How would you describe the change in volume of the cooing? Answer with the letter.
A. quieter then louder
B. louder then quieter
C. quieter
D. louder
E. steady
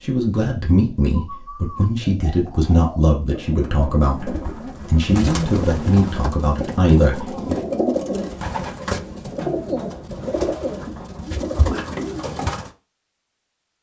D.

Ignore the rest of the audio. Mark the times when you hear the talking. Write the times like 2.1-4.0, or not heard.
0.0-7.5.